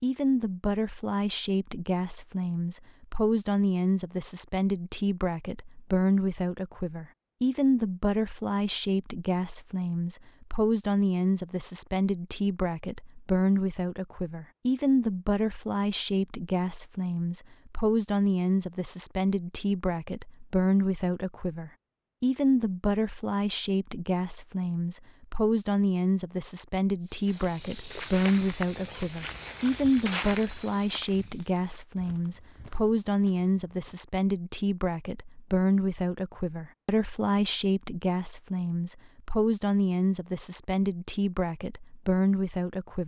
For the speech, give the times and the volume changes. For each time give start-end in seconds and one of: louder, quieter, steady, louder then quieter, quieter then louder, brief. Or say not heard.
0.0-43.0 steady.